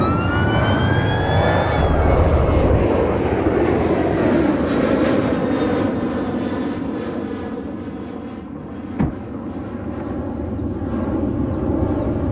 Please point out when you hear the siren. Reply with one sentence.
The siren can be heard from 0.0 to 2.1 s.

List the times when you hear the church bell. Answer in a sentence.
The church bell can't be heard in this clip.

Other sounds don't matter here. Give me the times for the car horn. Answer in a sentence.
You can hear the car horn from 1.8 to 2.9 s and from 8.6 to 9.2 s.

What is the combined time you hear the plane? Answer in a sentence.
You can hear the plane for 12 seconds altogether.